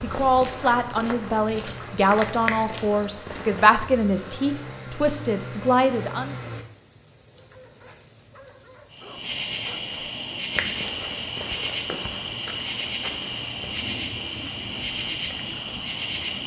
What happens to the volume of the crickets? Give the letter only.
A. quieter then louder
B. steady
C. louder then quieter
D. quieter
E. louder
E.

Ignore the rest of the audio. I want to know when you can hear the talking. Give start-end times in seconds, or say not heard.
0.0-6.3.